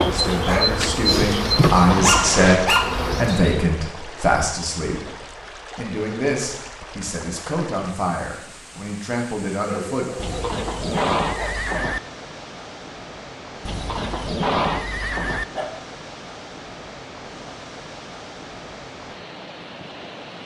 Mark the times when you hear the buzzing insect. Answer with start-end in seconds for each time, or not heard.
0.0-3.6.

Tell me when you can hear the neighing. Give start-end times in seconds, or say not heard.
1.6-2.4, 10.2-12.0, 13.7-15.4.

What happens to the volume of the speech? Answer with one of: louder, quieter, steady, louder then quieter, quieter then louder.
louder then quieter.